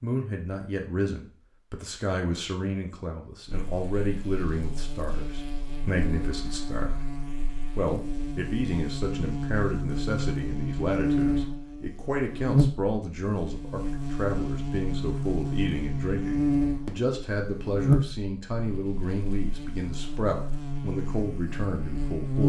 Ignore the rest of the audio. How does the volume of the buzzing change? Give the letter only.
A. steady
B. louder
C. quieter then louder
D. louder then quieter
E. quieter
D.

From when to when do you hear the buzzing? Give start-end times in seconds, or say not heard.
3.5-22.4.